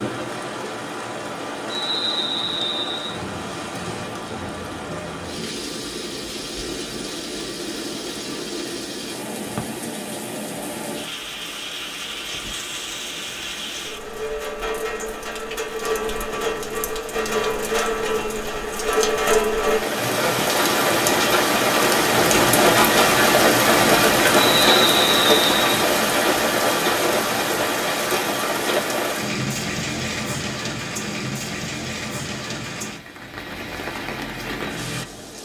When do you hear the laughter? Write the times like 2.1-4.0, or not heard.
not heard.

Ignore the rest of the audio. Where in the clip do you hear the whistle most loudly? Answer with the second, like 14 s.
25 s.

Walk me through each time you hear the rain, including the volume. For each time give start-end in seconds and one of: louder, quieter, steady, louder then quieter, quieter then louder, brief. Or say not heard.
0.0-35.3 louder then quieter.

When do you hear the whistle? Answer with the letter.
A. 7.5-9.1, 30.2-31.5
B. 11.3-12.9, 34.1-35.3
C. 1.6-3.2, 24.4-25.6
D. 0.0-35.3
C.